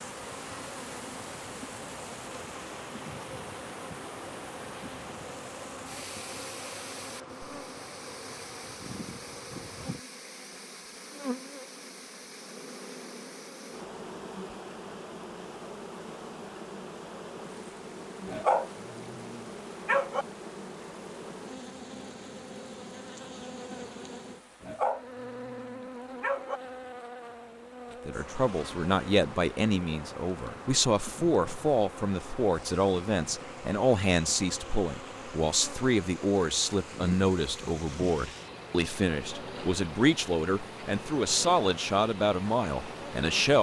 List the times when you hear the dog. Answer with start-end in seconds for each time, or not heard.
18.2-20.2, 24.6-26.6.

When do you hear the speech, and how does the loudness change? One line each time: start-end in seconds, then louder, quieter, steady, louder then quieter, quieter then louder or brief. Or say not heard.
28.1-43.5 steady.